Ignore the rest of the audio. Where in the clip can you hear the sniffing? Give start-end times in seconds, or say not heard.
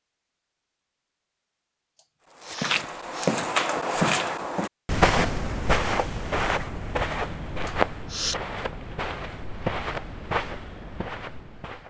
1.9-3.4, 7.7-8.3.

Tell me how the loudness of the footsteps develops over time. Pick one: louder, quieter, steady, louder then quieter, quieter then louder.
quieter.